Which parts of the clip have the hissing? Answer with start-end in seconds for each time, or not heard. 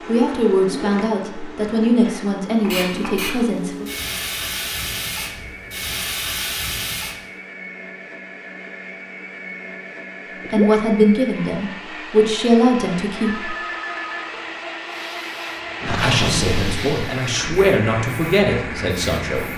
2.6-7.2, 14.8-19.5.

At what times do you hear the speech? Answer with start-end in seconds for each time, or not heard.
0.1-3.9, 10.5-13.6, 15.8-19.5.